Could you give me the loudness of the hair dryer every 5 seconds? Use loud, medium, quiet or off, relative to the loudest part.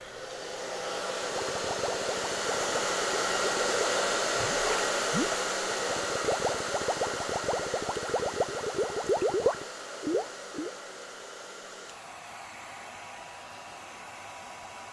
loud, loud, quiet.